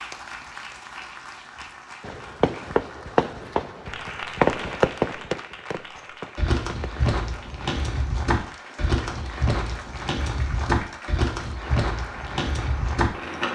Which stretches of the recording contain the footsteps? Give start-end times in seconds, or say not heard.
6.3-13.5.